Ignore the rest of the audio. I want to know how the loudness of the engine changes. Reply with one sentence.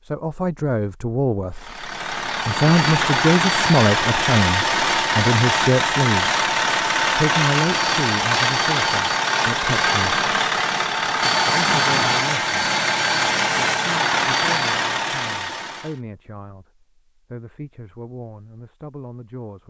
The loudness of the engine stays about the same.